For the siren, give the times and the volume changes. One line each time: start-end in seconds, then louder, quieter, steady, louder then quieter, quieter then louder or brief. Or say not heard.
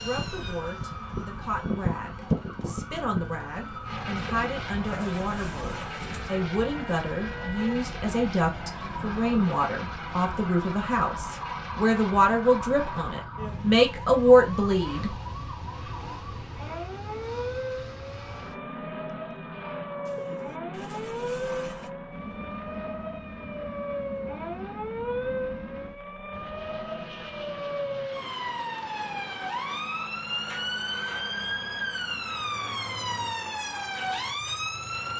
0.1-35.1 louder.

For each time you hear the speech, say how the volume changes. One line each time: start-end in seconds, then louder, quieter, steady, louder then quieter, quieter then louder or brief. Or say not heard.
0.0-15.1 louder.